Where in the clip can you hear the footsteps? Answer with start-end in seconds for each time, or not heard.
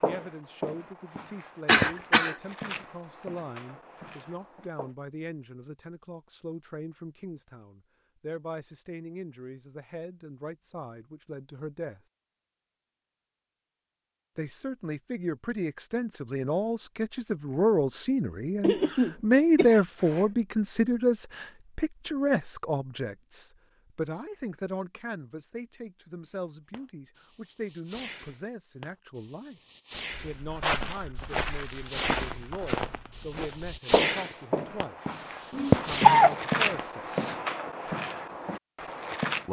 0.0-4.9, 30.1-39.4.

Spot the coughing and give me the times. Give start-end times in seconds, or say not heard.
1.6-2.4, 18.6-20.2, 35.5-36.4.